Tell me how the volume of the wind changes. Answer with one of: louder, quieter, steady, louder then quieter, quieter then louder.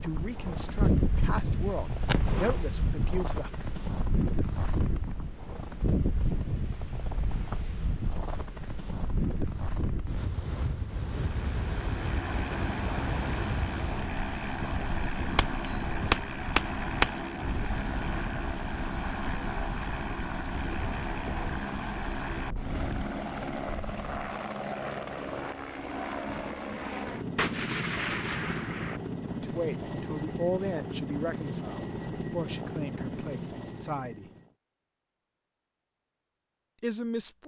quieter.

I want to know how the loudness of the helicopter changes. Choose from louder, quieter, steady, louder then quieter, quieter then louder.
steady.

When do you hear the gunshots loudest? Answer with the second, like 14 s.
17 s.